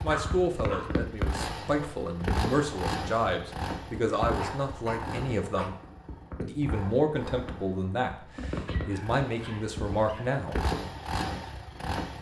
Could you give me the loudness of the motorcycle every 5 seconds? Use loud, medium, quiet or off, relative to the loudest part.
loud, medium, loud.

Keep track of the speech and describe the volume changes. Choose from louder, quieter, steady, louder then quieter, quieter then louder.
steady.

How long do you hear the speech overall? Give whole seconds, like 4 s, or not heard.
10 s.